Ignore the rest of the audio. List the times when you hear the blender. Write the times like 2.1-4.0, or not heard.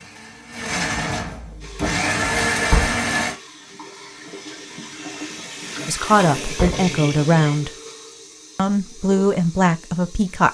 0.0-3.4.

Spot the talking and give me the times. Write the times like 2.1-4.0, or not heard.
5.8-7.7, 8.6-10.4.